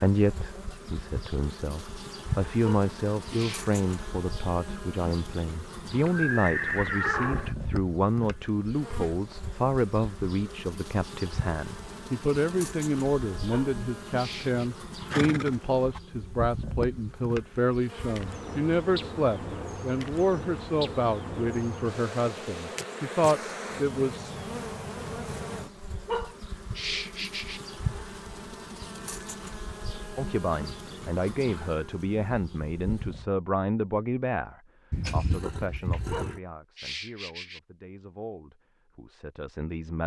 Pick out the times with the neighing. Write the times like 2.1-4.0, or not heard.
6.0-7.5, 15.1-16.0, 34.9-36.4.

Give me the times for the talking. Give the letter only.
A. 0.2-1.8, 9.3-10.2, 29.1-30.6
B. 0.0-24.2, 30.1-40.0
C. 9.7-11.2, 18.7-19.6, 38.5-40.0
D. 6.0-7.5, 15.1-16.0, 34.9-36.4
B.